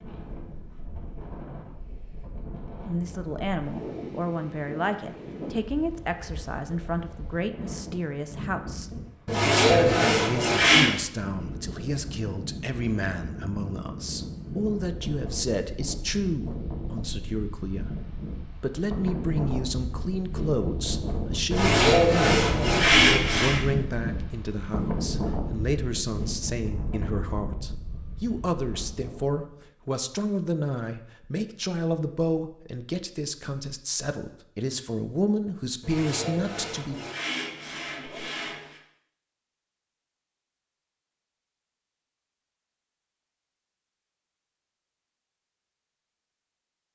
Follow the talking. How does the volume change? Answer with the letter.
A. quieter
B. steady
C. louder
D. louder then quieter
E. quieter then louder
B.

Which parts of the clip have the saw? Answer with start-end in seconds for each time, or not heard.
9.2-10.9, 21.5-23.6, 35.8-38.8.